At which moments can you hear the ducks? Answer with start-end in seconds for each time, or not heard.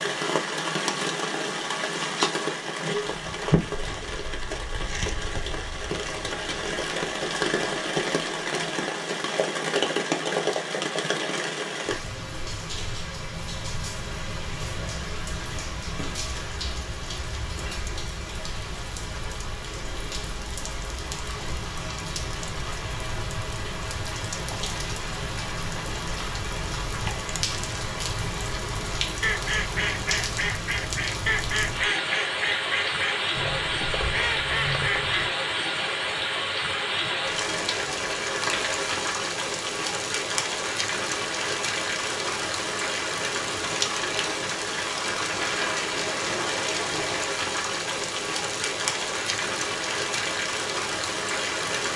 29.2-35.3.